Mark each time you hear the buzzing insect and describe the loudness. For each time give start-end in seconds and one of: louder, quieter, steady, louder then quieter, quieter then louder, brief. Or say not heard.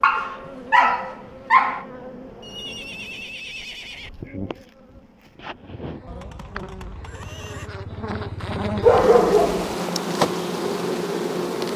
0.0-11.7 louder.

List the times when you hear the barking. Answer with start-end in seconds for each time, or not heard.
0.0-1.9, 8.8-9.8.